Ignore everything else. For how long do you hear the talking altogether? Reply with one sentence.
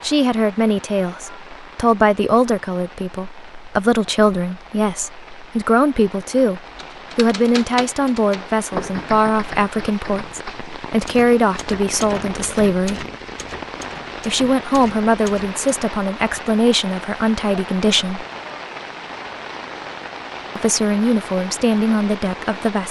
You can hear the talking for 19 seconds altogether.